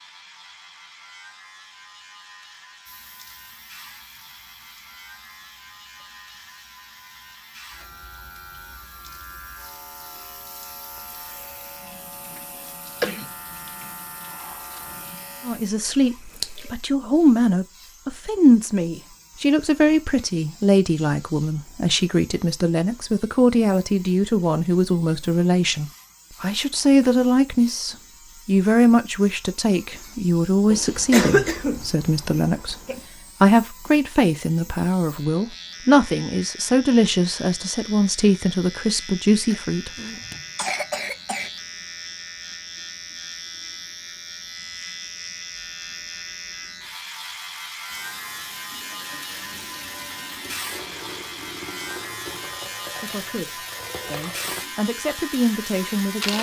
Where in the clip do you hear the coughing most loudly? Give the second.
31 s.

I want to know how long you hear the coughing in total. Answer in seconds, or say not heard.
5 s.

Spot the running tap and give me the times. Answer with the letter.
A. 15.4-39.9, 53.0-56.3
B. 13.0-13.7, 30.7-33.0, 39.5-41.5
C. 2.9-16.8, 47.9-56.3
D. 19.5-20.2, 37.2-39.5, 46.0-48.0
C.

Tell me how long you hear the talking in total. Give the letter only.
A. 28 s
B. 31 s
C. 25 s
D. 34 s
A.